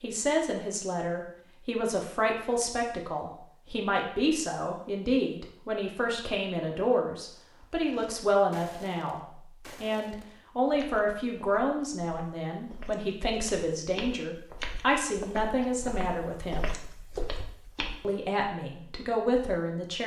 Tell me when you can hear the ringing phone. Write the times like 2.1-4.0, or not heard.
not heard.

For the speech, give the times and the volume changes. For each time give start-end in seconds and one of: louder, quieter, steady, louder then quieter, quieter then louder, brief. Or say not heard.
0.0-16.7 steady
18.0-20.0 brief.